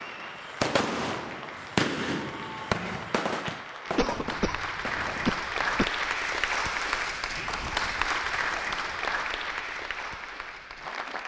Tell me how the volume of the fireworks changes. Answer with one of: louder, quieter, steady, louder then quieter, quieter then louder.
quieter.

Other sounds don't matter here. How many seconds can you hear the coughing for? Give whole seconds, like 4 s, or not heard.
2 s.